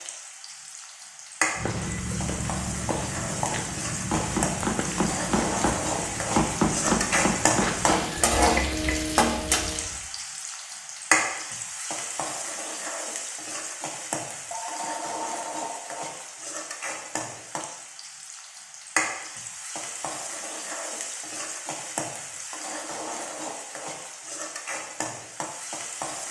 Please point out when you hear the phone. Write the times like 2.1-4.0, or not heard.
14.5-16.0.